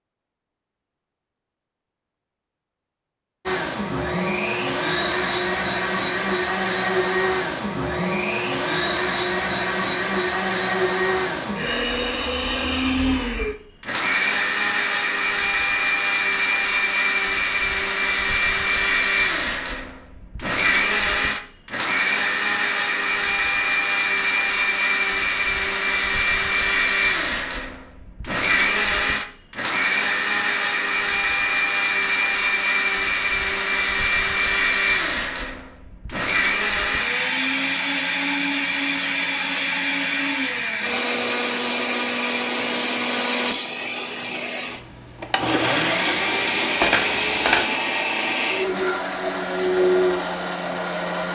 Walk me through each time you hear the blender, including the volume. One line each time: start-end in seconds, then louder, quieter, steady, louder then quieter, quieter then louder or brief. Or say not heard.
3.5-51.2 steady.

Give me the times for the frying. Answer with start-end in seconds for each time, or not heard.
45.5-47.7.